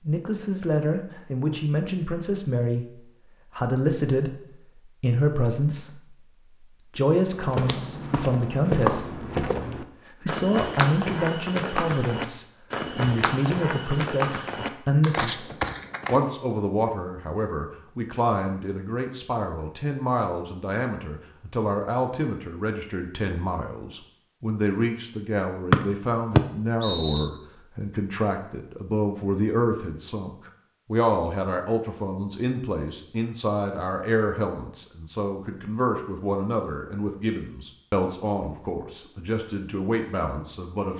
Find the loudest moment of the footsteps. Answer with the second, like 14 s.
9 s.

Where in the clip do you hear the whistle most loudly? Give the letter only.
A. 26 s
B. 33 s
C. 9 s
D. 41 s
A.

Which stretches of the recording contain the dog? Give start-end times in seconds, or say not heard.
not heard.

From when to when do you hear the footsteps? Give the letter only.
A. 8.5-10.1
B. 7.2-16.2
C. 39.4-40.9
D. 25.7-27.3
B.